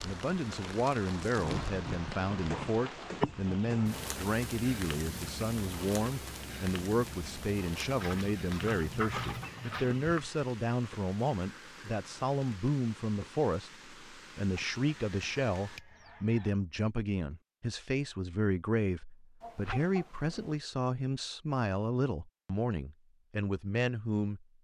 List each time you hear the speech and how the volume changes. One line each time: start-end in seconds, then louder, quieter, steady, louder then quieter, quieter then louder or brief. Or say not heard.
0.0-24.4 steady.